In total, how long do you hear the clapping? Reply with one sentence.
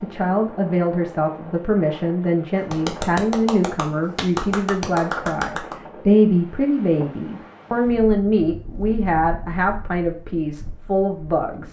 You can hear the clapping for 3 seconds altogether.